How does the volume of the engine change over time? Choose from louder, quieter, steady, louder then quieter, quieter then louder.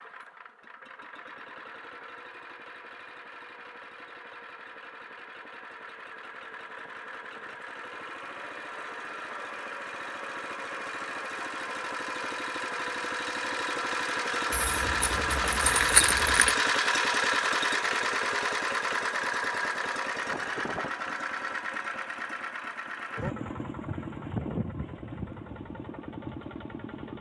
louder then quieter.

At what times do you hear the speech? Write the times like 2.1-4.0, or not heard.
not heard.